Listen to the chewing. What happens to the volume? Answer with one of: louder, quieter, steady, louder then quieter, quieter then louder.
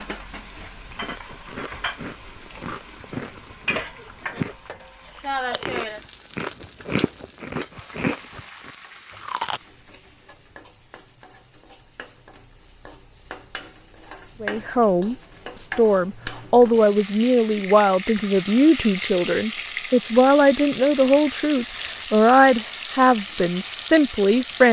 louder.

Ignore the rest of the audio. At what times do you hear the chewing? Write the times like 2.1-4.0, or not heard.
0.9-4.5, 5.2-9.6.